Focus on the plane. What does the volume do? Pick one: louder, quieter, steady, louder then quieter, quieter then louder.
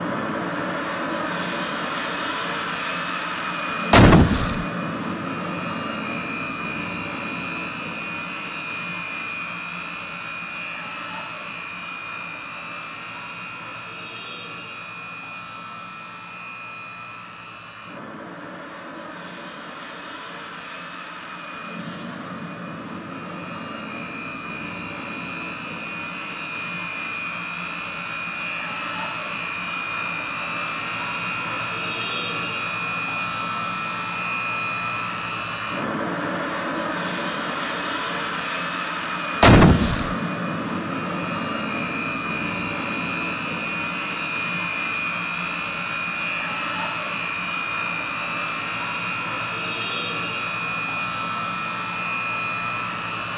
quieter then louder.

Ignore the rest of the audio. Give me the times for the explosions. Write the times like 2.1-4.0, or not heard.
3.9-4.7, 39.4-40.1.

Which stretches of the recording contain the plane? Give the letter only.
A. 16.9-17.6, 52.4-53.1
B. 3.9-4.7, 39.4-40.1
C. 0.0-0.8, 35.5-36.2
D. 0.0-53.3
D.